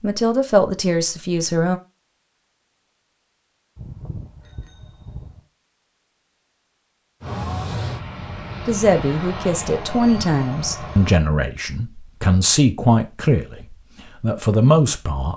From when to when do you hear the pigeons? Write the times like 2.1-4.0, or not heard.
not heard.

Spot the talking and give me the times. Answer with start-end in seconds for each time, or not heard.
0.0-1.8, 8.7-15.3.